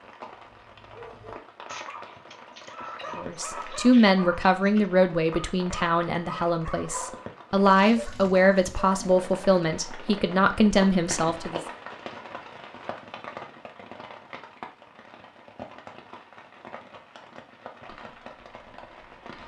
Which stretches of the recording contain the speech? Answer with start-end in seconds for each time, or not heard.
3.1-11.6.